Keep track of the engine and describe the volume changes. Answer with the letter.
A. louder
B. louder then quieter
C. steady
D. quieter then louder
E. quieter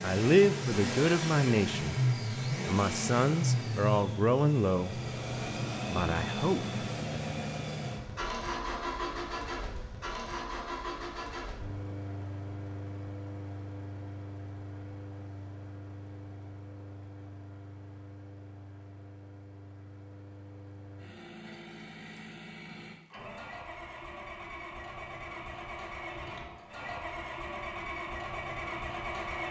D.